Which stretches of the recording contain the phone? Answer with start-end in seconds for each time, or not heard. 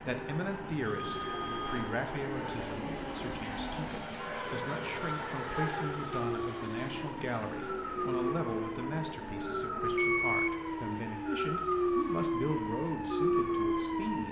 0.8-1.9, 10.1-10.5.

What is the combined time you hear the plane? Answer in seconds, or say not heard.
14 s.